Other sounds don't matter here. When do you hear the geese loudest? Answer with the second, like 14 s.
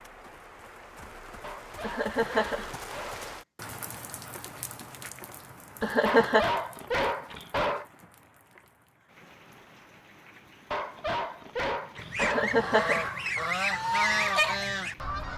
14 s.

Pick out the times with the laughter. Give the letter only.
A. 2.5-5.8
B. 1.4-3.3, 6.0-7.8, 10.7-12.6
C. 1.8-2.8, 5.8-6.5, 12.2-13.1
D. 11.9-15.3
C.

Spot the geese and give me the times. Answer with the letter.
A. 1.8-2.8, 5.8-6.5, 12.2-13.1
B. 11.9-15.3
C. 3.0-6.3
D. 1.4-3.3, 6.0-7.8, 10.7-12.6
B.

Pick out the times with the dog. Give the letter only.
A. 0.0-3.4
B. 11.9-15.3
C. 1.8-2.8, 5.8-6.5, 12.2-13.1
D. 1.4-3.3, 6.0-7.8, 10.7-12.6
D.